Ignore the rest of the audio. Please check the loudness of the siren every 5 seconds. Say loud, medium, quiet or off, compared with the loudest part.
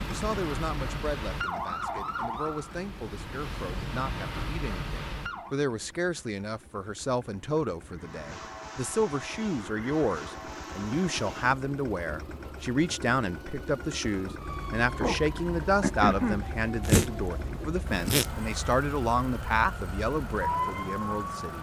medium, medium, quiet, loud, loud.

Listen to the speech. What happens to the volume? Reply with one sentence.
The volume of the speech goes up.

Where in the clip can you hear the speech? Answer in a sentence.
The speech can be heard from 0.1 to 21.5 s.